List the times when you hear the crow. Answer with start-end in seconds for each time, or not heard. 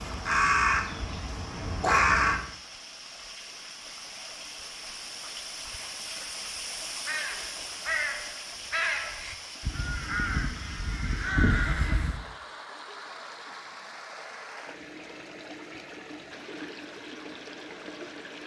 0.0-2.5, 7.0-12.2.